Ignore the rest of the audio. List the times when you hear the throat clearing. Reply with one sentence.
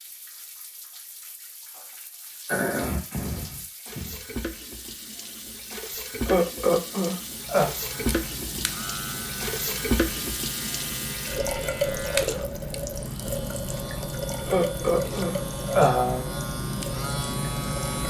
You can hear the throat clearing from 2.5 to 4.2 s, from 6.2 to 7.7 s and from 14.4 to 16.4 s.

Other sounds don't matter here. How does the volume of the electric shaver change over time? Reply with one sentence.
The volume of the electric shaver goes up.